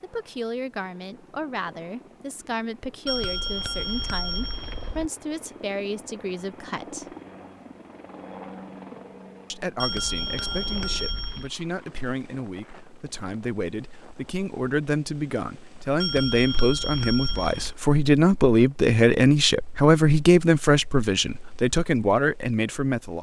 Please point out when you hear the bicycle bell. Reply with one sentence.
The bicycle bell can be heard from 3.0 to 5.1 s, from 9.8 to 11.5 s and from 16.0 to 17.8 s.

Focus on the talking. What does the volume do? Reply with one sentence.
The loudness of the talking goes up.